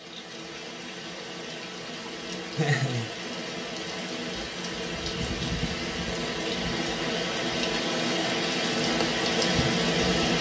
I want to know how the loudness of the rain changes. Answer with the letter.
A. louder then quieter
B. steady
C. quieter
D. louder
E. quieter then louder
D.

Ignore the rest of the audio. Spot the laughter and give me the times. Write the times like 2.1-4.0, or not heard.
2.5-3.1.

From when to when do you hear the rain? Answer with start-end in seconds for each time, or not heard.
0.0-10.3.